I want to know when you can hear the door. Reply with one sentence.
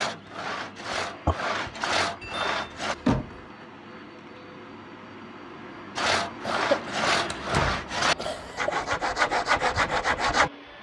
The door can be heard from 2.2 to 3.4 s and from 7.2 to 7.8 s.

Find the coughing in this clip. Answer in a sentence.
You can hear the coughing from 1.2 to 1.9 s, from 6.5 to 7.0 s and from 8.2 to 8.9 s.